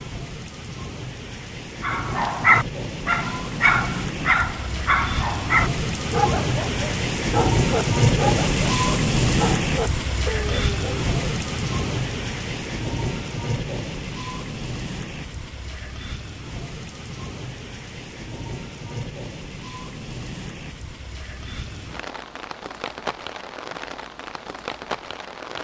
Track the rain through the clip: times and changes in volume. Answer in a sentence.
You can hear the rain from 0.0 to 25.5 s, getting louder then quieter.